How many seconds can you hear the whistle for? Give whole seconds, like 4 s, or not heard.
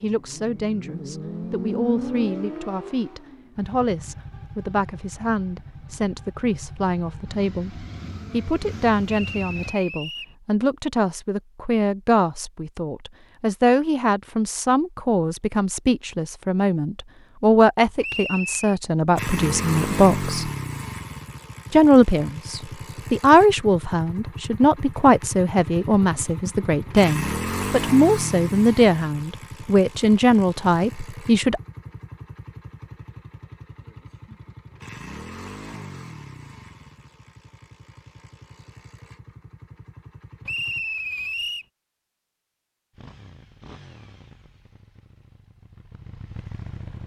3 s.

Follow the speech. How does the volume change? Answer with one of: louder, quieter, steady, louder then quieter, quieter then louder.
louder.